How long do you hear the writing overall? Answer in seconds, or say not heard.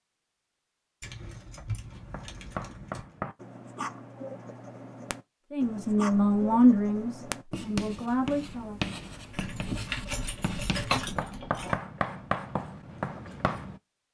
12 s.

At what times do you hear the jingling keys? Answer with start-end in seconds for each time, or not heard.
1.0-3.0, 9.3-11.8.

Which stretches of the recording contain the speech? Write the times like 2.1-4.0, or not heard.
5.5-8.8.